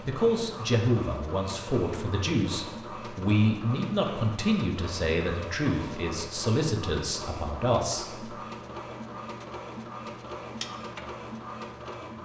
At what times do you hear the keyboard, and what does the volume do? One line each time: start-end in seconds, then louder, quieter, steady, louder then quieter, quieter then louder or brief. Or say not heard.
not heard.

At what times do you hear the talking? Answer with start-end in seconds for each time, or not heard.
0.0-8.2.